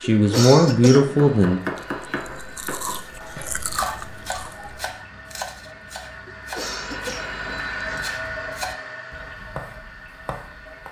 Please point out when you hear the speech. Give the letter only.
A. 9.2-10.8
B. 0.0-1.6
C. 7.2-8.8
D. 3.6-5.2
B.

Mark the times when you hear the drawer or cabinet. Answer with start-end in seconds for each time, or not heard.
not heard.